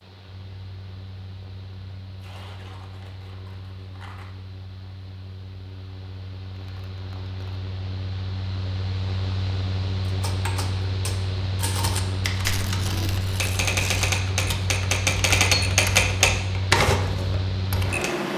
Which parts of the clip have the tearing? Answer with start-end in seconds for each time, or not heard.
2.2-4.4, 6.5-7.6, 12.4-14.1.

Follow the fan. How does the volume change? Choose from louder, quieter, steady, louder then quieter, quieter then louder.
louder.